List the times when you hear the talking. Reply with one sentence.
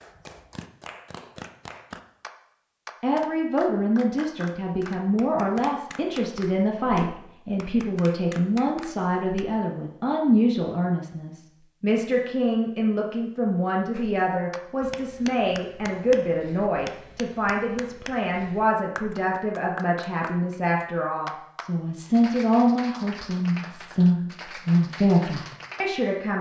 You can hear the talking from 3.0 to 26.3 s.